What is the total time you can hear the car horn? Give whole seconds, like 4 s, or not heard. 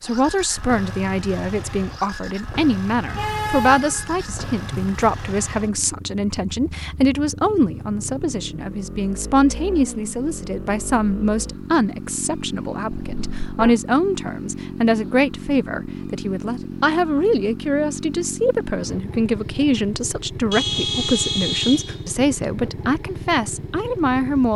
5 s.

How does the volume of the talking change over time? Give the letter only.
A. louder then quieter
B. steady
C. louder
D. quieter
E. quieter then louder
B.